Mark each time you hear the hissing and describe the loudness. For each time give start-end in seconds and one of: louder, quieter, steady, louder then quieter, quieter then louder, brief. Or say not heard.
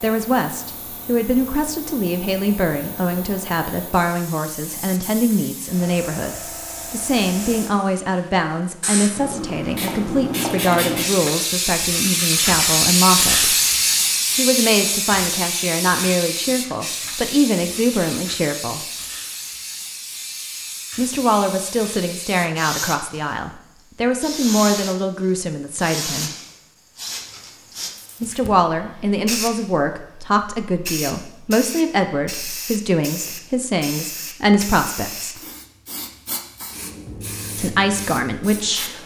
0.0-39.0 louder then quieter.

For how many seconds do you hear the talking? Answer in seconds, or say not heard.
32 s.